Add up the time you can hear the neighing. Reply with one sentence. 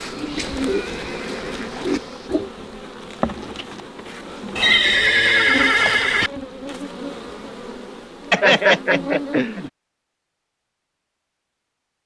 The neighing can be heard for 5 seconds in total.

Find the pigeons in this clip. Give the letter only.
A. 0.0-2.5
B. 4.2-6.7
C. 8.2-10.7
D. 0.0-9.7
A.